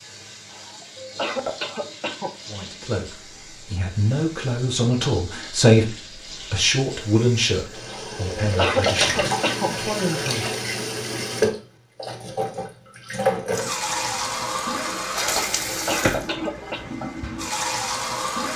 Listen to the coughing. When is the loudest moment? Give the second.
9 s.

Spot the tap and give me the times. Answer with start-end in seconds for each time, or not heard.
0.0-18.5.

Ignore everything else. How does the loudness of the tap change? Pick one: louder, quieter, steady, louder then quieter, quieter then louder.
louder.